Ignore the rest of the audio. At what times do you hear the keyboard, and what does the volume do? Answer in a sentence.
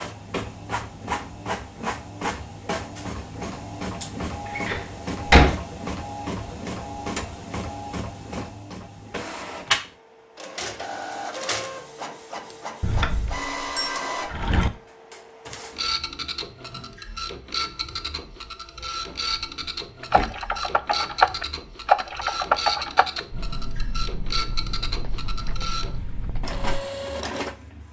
You can hear the keyboard from 20.0 to 26.8 s, getting quieter.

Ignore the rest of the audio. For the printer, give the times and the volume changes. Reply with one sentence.
You can hear the printer from 0.0 to 27.8 s, at a steady volume.